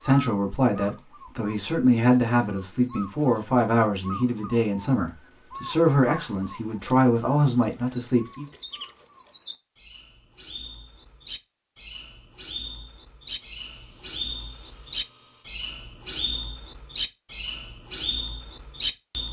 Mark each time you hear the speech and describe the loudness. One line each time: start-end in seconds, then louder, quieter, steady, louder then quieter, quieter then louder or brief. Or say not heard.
0.0-8.4 steady.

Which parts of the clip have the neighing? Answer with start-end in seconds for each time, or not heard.
not heard.